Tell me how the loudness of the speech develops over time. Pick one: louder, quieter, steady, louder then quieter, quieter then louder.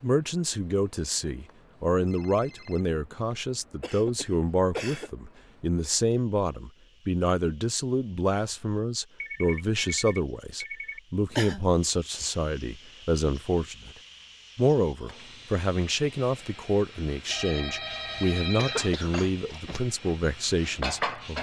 steady.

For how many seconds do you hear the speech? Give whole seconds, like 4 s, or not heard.
21 s.